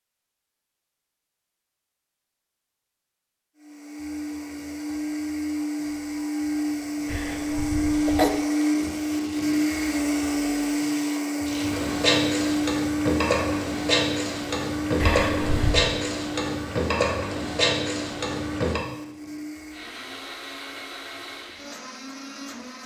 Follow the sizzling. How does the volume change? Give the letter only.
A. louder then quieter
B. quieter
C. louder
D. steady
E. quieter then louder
C.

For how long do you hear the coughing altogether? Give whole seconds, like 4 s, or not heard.
2 s.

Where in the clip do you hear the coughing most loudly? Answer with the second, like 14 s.
8 s.